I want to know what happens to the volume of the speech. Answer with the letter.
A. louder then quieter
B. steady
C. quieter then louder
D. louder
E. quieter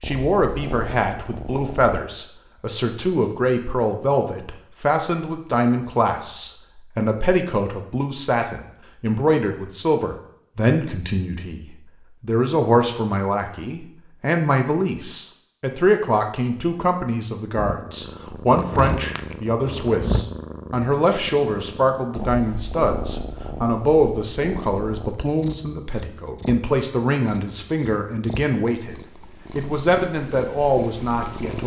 B.